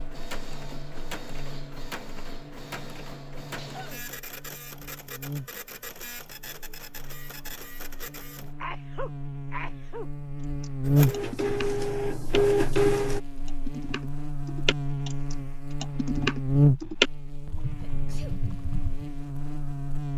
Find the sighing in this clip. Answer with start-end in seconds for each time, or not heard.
not heard.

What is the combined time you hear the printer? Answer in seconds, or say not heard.
11 s.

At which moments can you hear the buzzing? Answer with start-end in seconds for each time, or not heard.
0.0-20.1.